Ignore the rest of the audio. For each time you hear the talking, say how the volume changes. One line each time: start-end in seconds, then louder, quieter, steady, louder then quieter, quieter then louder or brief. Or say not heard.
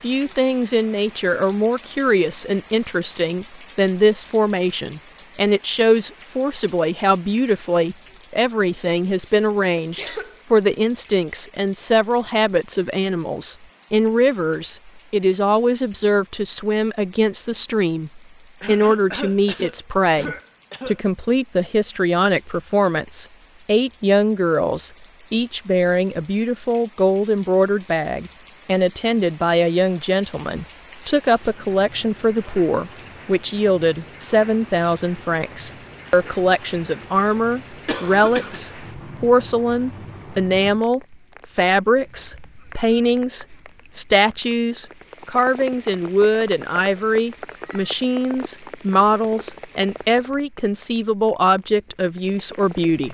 0.0-53.0 steady.